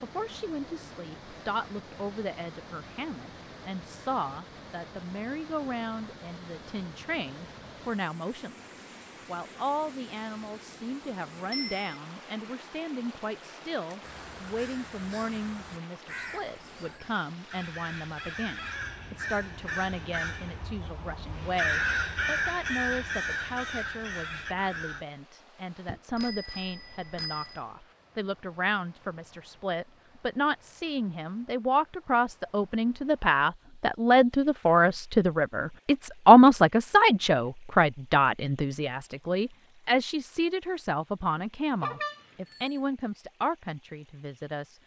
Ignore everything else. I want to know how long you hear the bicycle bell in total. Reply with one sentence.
The bicycle bell can be heard for 3 seconds in total.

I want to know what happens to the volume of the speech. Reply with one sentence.
The volume of the speech goes up.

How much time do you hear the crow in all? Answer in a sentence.
The crow can be heard for 11 seconds in total.